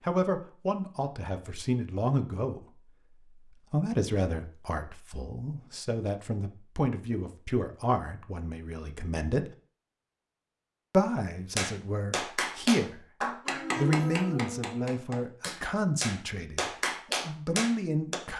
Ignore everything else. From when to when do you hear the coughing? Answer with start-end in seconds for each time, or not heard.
not heard.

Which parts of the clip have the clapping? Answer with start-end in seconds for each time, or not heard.
11.6-18.2.